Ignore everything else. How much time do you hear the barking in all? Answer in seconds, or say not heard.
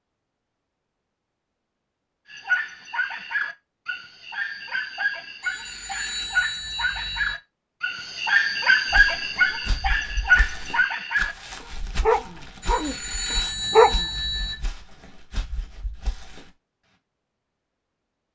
12 s.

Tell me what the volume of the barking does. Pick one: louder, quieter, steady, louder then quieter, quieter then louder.
louder.